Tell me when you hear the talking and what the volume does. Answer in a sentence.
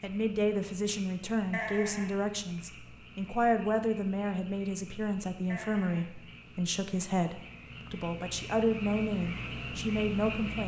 The talking can be heard from 0.0 to 10.6 s, at a steady volume.